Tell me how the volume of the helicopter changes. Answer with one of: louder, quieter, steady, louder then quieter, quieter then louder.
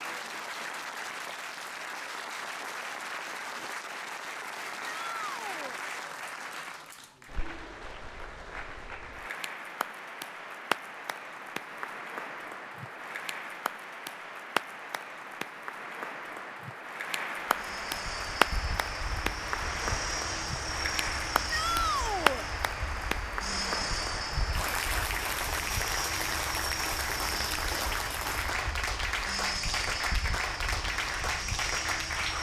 steady.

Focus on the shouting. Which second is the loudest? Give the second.
22 s.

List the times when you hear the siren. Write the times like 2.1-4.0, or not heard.
not heard.